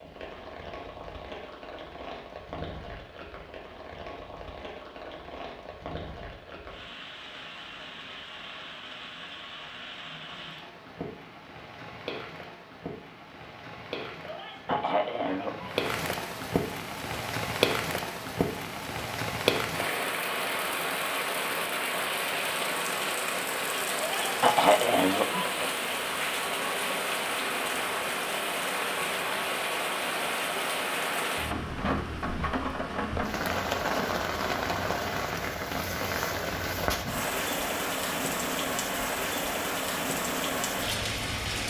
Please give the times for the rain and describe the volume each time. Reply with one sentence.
The rain can be heard from 0.0 to 41.6 s, getting louder.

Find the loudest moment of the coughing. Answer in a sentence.
The loudest moment of the coughing is at 25 seconds.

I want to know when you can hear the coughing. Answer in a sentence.
You can hear the coughing from 14.2 to 15.8 s and from 24.0 to 25.7 s.